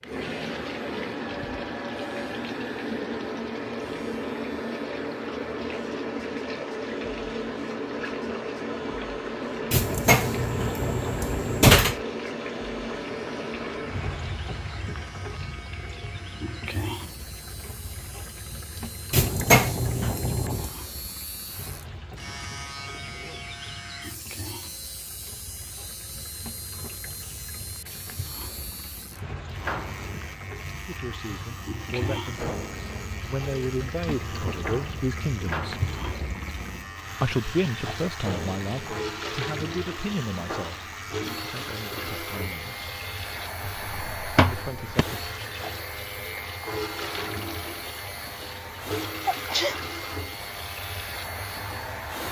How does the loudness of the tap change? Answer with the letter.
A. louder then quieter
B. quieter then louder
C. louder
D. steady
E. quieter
B.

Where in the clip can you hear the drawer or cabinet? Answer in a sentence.
You can hear the drawer or cabinet from 9.7 to 11.9 s, from 19.1 to 20.8 s and from 43.6 to 45.0 s.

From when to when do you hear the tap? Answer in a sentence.
You can hear the tap from 0.0 to 52.2 s.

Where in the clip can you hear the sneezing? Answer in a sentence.
The sneezing can be heard from 49.2 to 49.8 s.